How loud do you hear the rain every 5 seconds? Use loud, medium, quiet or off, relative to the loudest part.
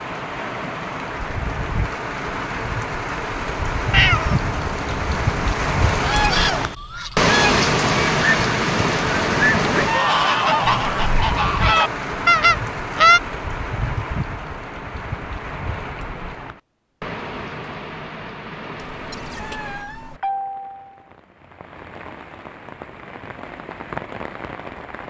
medium, loud, medium, quiet, quiet.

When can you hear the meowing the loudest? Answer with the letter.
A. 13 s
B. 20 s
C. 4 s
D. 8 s
C.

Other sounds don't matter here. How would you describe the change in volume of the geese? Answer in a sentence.
The volume of the geese goes up.